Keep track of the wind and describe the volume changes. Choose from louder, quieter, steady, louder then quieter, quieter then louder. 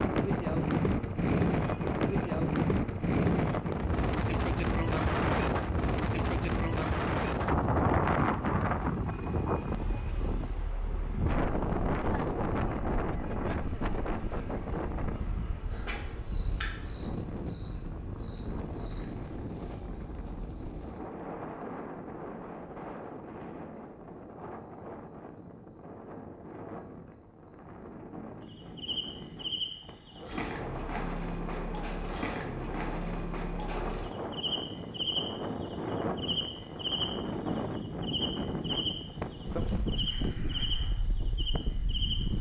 quieter then louder.